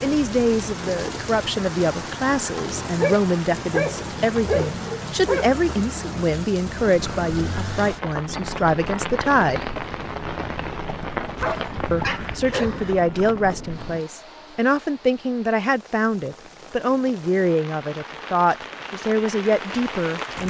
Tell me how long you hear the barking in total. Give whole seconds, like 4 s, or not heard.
4 s.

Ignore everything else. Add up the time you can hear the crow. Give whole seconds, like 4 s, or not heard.
not heard.